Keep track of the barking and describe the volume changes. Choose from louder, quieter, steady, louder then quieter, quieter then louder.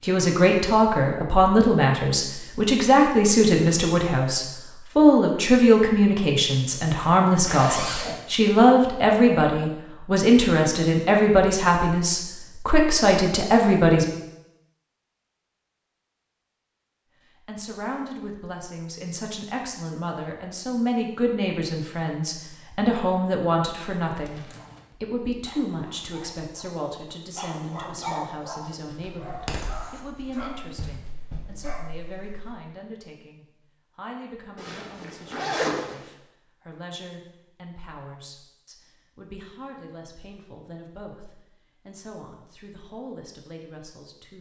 louder then quieter.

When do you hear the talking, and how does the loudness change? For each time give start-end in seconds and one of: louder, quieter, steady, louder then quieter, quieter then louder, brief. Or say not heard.
0.0-14.1 steady
17.4-44.3 quieter.